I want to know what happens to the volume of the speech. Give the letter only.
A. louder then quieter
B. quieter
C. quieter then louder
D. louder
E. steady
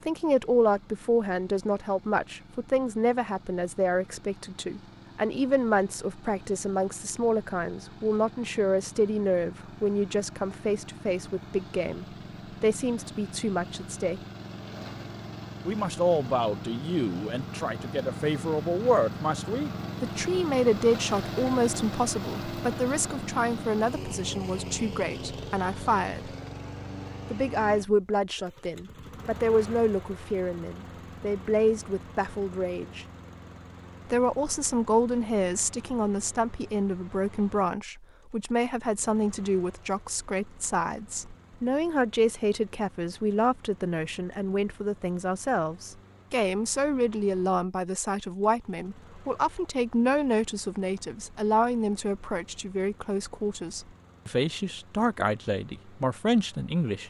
E.